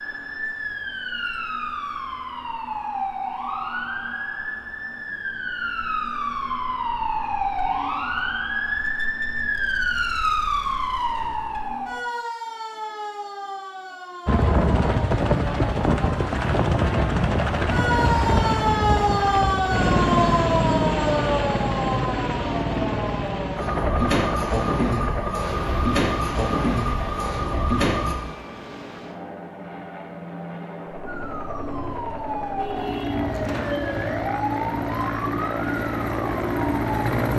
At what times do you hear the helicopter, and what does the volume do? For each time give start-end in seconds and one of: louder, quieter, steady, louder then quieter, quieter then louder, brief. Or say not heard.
14.2-37.3 quieter then louder.